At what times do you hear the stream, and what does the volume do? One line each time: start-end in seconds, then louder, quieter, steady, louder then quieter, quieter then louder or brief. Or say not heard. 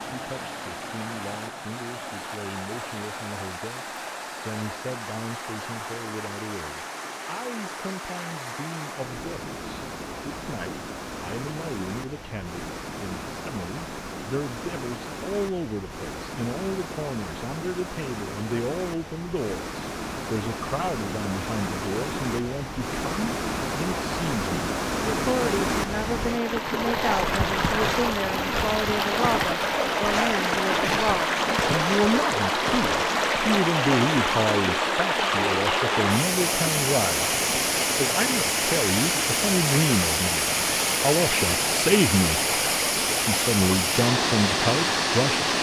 0.0-45.5 louder.